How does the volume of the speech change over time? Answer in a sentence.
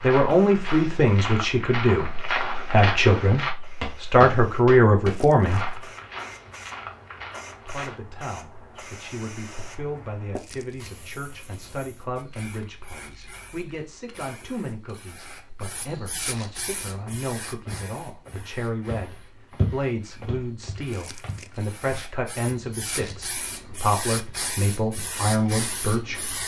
The loudness of the speech goes down, then up.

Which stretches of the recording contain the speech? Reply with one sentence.
The speech can be heard from 0.0 to 5.8 s and from 7.7 to 26.3 s.